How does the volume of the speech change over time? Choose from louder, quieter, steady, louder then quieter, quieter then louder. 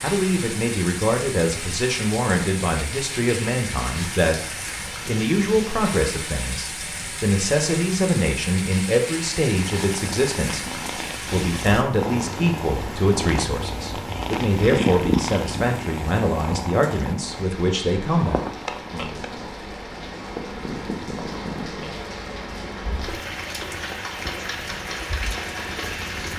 steady.